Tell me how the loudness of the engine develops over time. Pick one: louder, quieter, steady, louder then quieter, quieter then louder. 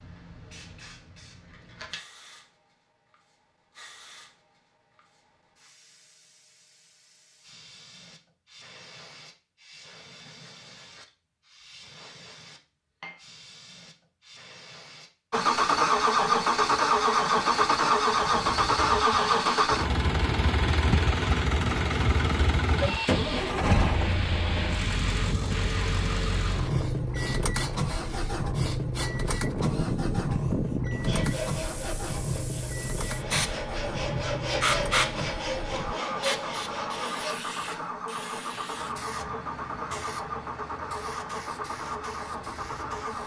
quieter.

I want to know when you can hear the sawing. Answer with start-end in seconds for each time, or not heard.
31.0-37.4.